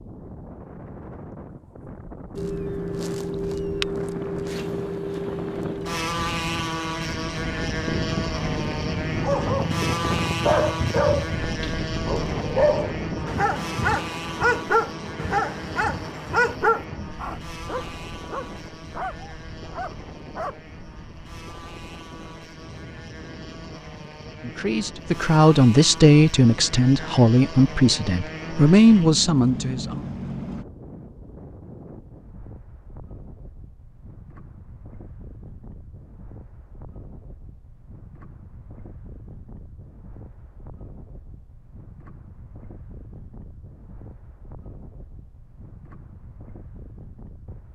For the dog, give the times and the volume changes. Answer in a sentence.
You can hear the dog from 9.2 to 20.6 s, getting quieter.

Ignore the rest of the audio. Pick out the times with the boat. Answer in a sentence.
You can hear the boat from 2.4 to 30.6 s.